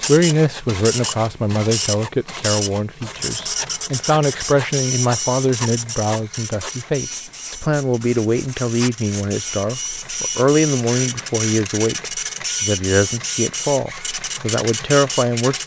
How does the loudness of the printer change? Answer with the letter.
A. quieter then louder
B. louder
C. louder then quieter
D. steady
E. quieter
A.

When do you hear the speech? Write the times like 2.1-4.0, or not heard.
0.1-15.6.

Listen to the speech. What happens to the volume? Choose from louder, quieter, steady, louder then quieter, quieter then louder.
steady.